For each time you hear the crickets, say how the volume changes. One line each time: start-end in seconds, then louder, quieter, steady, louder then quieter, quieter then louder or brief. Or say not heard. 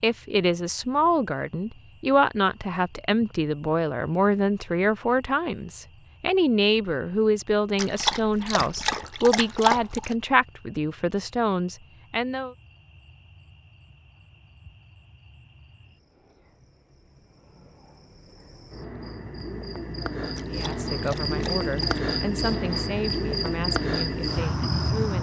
0.0-25.1 louder.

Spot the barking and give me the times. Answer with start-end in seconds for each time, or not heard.
7.8-10.2, 20.4-22.0.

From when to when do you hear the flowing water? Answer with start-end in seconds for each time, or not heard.
not heard.